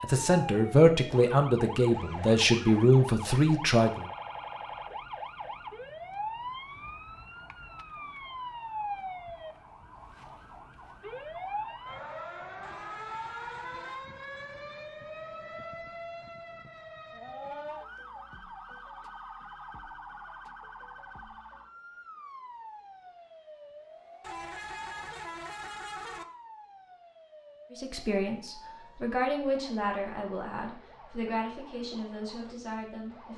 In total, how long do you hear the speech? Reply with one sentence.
The speech can be heard for 10 seconds in total.